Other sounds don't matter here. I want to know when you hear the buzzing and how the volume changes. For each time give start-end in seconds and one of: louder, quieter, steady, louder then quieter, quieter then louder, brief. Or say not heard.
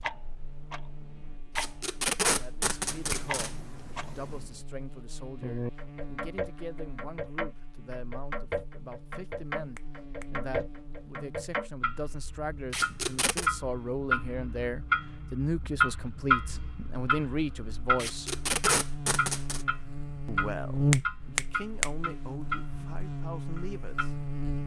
0.0-24.6 louder.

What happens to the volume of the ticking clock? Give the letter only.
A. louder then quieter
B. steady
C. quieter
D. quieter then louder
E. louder
A.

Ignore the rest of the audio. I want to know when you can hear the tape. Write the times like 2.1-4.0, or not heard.
1.6-3.5, 12.7-13.5, 17.9-19.6.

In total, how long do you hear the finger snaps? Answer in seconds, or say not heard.
3 s.